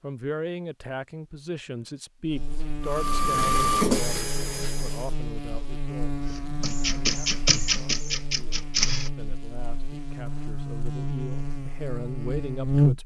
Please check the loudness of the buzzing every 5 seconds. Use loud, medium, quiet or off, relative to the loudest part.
medium, medium, loud.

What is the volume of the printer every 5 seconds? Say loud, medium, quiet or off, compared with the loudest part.
loud, loud, off.